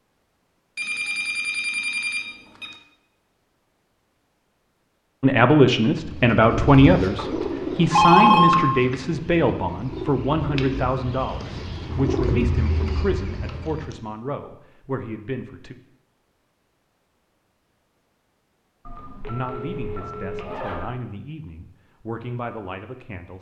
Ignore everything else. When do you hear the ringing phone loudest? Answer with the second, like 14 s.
8 s.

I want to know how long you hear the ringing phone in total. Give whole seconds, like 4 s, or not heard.
5 s.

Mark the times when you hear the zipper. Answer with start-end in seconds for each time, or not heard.
19.5-20.9.